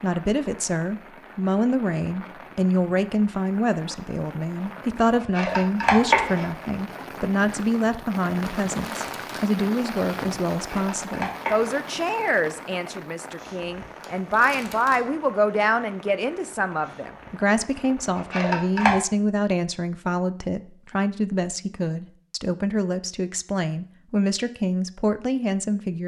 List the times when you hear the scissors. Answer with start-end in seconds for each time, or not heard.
5.2-6.5, 10.7-11.7, 18.1-18.9.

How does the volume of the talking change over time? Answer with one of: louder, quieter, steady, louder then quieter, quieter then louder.
steady.